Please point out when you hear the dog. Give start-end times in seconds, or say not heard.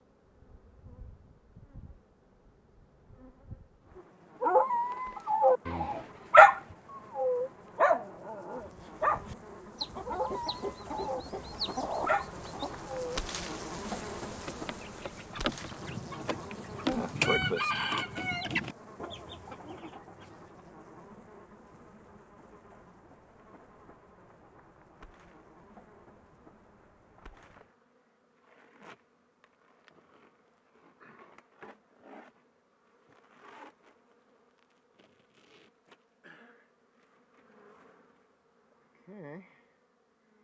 4.0-13.2.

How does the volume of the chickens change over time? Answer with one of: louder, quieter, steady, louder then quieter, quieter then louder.
louder then quieter.